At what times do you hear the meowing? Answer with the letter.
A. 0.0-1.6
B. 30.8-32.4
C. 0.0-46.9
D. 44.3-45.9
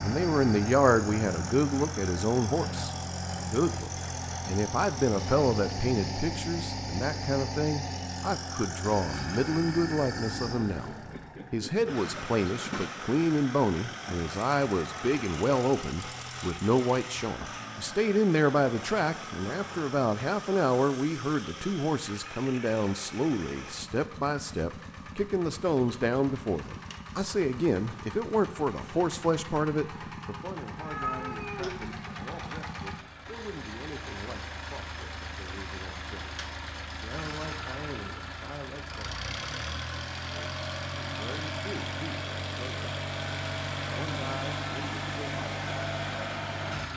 B.